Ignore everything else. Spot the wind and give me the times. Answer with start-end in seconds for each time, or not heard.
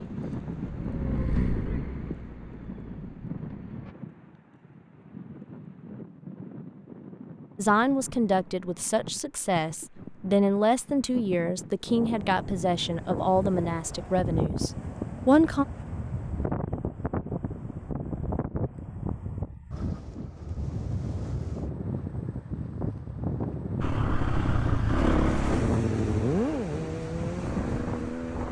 0.0-28.4.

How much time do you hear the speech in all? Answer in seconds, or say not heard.
8 s.